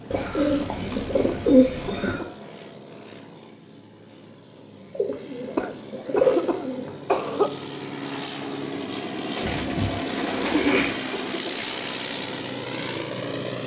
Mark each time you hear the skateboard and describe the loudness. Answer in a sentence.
The skateboard can't be heard in this clip.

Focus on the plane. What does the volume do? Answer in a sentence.
The loudness of the plane goes down, then up.